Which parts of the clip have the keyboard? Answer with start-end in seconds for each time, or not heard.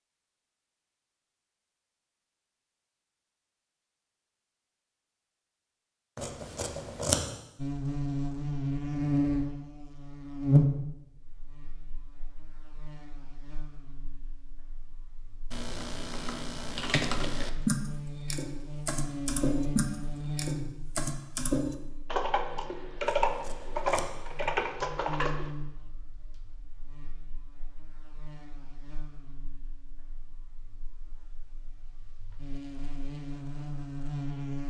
15.5-25.5.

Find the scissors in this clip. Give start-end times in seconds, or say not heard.
6.2-7.2, 23.0-24.6.